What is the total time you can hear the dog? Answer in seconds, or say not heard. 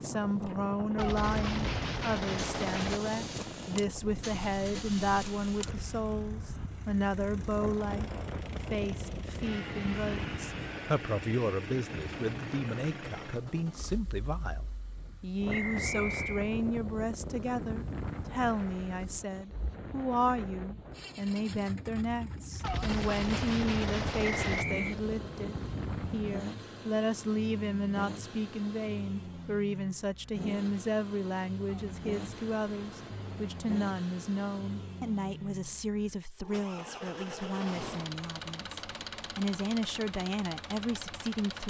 not heard.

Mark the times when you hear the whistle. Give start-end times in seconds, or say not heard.
15.5-16.5, 24.2-24.9.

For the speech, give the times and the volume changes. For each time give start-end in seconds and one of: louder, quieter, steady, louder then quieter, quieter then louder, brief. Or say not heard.
0.0-41.6 steady.